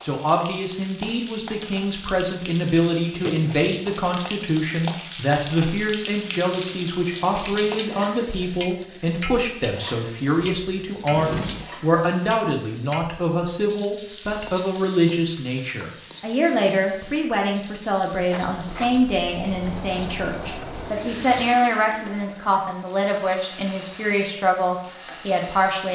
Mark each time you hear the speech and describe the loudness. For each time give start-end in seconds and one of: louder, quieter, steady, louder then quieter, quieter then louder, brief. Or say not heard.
0.0-25.9 steady.